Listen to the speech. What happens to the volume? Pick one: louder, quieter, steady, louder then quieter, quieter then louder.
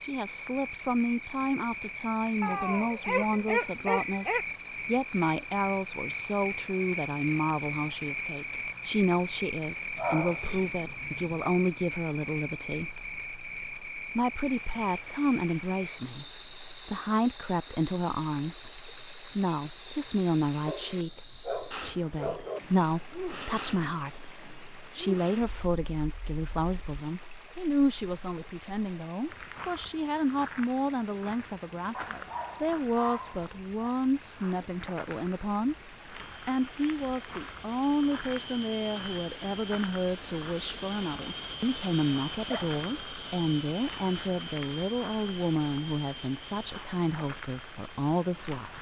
steady.